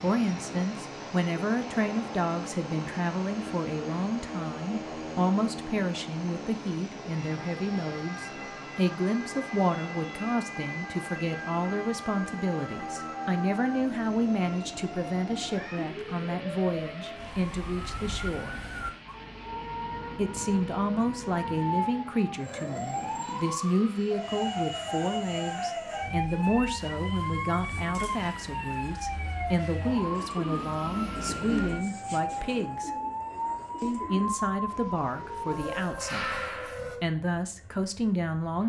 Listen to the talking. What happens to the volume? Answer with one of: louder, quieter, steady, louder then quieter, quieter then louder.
steady.